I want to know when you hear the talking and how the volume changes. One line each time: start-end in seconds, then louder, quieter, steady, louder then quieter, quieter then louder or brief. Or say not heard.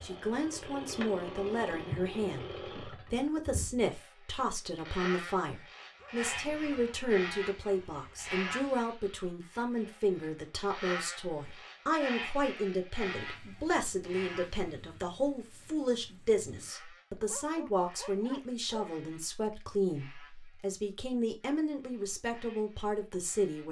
0.0-23.6 steady.